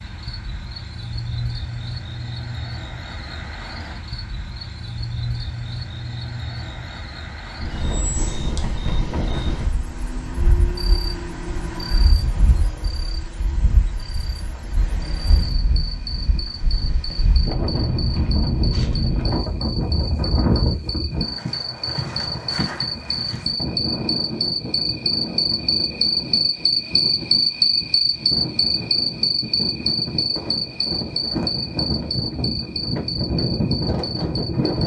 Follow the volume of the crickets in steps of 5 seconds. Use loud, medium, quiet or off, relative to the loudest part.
quiet, quiet, quiet, quiet, medium, loud, medium.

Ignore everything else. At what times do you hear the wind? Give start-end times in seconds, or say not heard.
7.6-34.8.